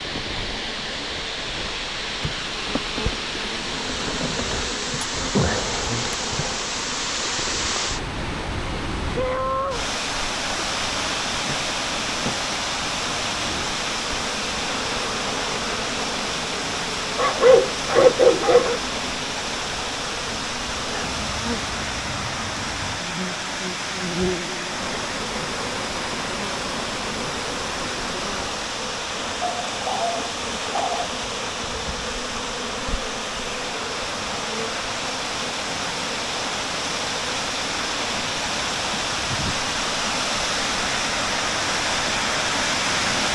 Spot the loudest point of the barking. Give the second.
18 s.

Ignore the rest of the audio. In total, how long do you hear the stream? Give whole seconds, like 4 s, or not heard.
43 s.